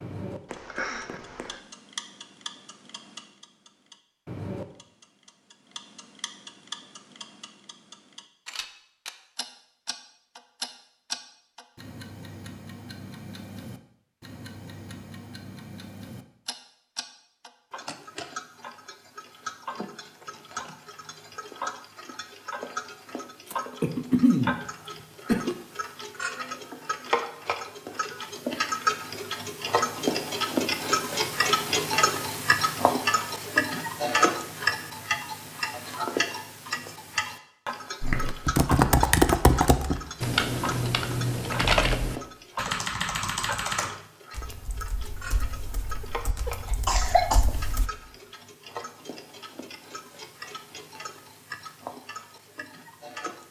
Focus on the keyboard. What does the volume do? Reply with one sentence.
The volume of the keyboard goes down.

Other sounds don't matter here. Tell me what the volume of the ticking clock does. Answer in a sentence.
The volume of the ticking clock goes up, then down.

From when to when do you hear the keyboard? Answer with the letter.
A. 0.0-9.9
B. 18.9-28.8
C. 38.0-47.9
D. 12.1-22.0
C.